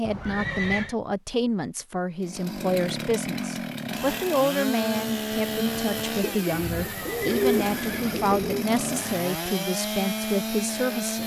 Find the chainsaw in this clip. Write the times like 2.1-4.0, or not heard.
2.2-11.2.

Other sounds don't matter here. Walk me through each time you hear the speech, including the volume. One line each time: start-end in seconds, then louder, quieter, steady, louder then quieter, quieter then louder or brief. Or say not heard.
0.0-11.2 steady.